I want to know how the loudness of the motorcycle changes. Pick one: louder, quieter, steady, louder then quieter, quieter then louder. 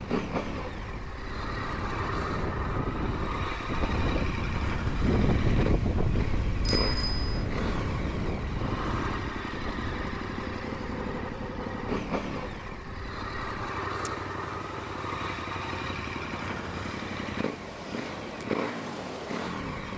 steady.